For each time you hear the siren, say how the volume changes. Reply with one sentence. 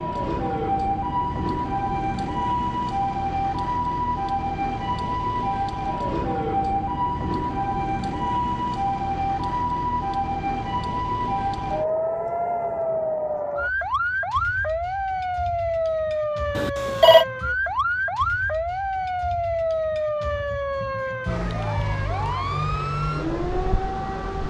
You can hear the siren from 0.0 to 24.4 s, at a steady volume.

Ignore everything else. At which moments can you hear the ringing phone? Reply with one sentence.
You can hear the ringing phone from 16.6 to 17.2 s.